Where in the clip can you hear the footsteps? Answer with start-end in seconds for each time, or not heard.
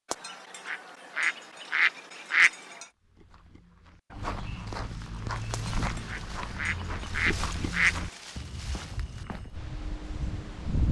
3.0-9.7.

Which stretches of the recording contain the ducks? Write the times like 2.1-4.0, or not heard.
0.1-2.9, 5.5-8.2.